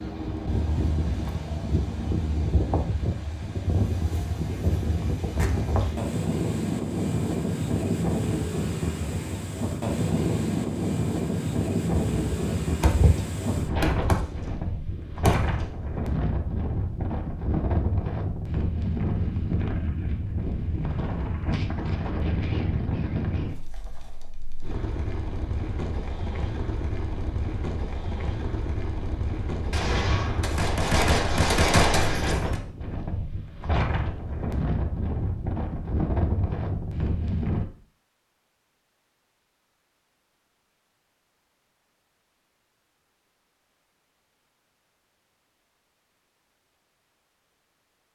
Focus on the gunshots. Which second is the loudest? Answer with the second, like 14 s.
32 s.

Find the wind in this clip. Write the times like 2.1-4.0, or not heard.
0.0-37.6.